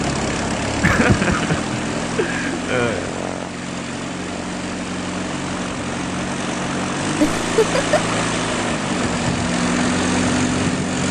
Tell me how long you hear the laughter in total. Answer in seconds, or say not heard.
3 s.